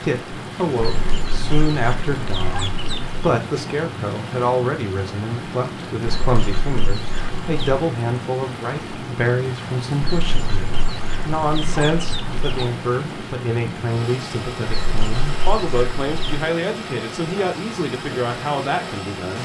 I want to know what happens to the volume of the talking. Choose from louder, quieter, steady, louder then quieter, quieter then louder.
steady.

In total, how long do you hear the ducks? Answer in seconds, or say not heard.
9 s.